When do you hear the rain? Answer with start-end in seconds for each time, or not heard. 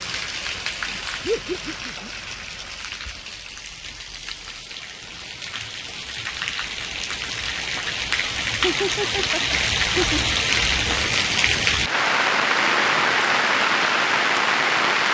0.0-15.0.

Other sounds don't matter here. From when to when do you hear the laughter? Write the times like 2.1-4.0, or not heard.
1.2-2.1, 8.6-10.2.